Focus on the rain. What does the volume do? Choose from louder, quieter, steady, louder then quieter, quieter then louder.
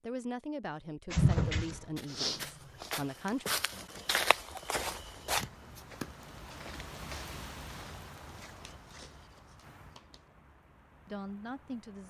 louder then quieter.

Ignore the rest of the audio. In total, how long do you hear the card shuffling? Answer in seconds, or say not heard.
3 s.